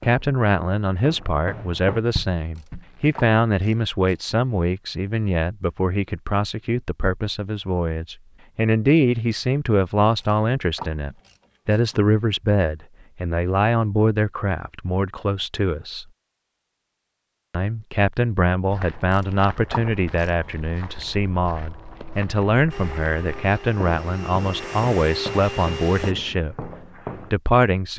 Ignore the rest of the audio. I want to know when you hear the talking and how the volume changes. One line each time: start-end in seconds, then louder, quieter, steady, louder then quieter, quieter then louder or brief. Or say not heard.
0.0-16.1 steady
17.5-26.6 steady
27.3-27.9 brief.